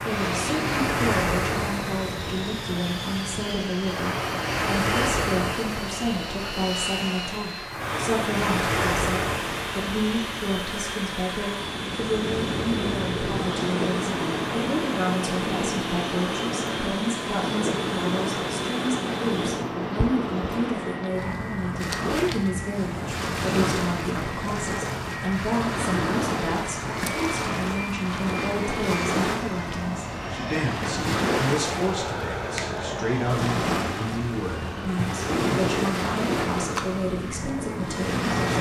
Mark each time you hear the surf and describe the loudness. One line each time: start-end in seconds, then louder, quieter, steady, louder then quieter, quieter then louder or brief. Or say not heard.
0.0-38.5 steady.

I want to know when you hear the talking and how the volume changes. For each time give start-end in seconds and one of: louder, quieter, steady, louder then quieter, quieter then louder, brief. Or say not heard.
0.1-38.3 steady.